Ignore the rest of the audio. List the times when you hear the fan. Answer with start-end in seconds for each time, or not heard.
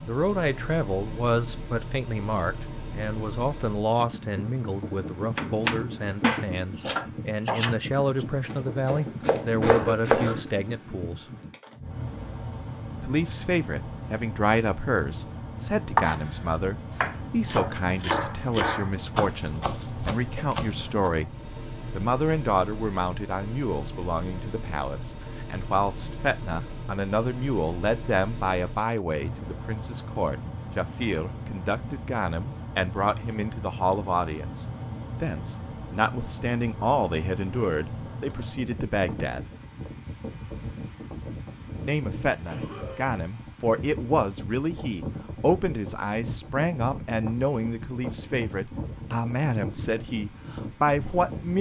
0.0-51.5.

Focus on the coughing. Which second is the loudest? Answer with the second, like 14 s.
10 s.